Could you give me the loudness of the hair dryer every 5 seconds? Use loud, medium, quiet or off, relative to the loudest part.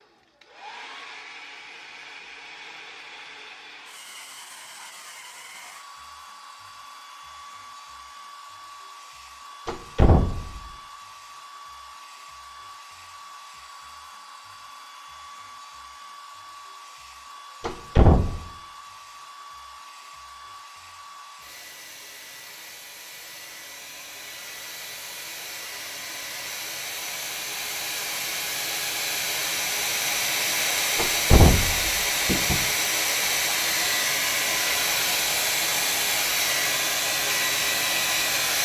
quiet, quiet, quiet, quiet, quiet, medium, loud, loud.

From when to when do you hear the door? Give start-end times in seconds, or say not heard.
9.7-10.6, 17.6-18.4, 30.9-32.6.